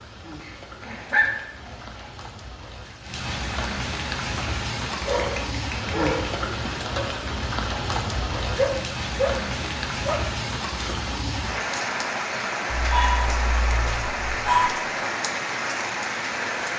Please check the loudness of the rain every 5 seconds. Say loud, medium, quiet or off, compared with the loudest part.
medium, loud, loud, loud.